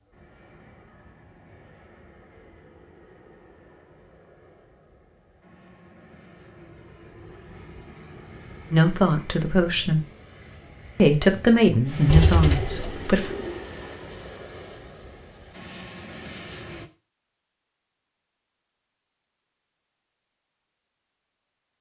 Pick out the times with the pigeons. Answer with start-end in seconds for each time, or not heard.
12.1-13.6.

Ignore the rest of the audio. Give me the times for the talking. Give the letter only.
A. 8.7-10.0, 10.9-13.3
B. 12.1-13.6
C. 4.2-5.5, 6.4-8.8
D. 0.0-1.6
A.